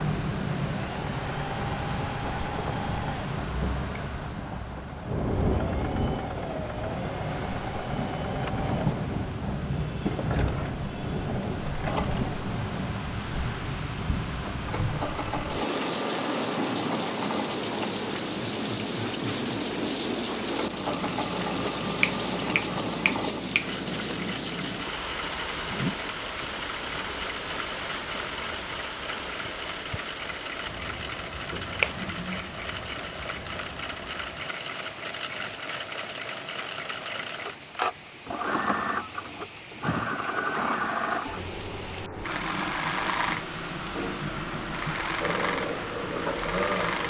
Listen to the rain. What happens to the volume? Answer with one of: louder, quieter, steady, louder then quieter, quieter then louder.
quieter.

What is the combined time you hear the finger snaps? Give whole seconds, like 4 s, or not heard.
3 s.